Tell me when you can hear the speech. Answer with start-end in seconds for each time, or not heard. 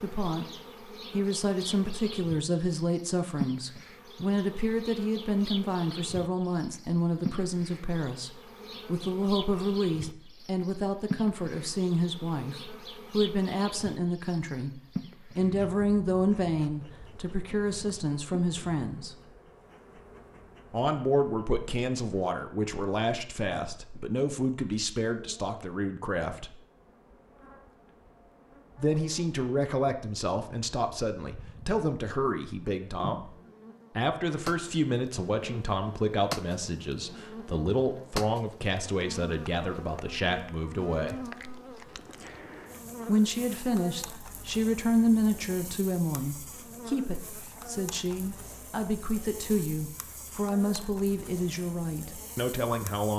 0.0-0.5, 1.1-19.1, 20.7-26.6, 28.8-33.3, 34.0-41.2, 43.0-53.1.